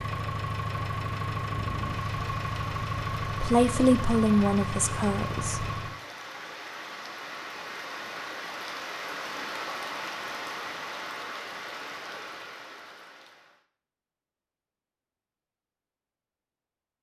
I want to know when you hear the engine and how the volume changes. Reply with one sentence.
You can hear the engine from 0.0 to 6.0 s, at a steady volume.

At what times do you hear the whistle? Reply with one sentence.
You can't hear the whistle here.